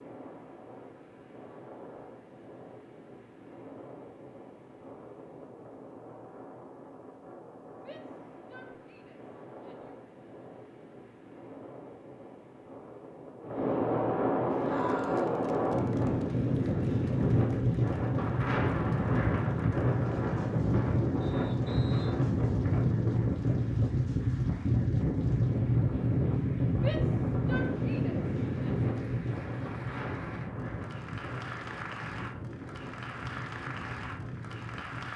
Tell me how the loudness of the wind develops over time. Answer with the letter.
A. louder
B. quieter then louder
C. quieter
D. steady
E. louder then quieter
E.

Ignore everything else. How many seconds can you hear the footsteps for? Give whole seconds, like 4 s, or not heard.
not heard.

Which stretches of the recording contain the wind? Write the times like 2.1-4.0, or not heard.
0.0-35.1.